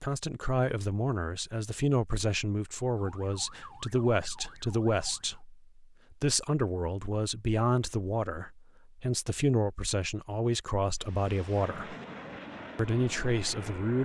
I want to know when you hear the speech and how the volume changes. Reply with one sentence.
You can hear the speech from 0.0 to 11.9 s, at a steady volume; and briefly from 12.8 to 14.0 s.